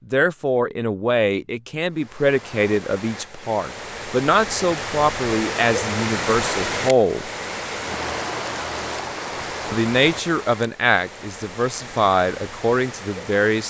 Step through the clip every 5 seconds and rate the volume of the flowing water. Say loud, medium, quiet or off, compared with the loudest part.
medium, loud, medium.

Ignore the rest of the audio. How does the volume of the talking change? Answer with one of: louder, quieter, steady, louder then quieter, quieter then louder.
steady.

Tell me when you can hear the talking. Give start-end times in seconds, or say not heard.
0.1-7.3, 9.7-13.6.